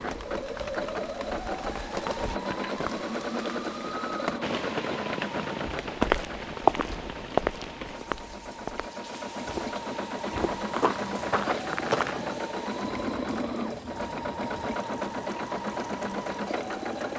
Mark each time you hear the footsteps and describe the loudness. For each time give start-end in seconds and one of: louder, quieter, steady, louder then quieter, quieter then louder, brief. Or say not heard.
5.8-12.4 quieter then louder.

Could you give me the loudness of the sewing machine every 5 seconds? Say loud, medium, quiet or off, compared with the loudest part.
loud, medium, loud, loud.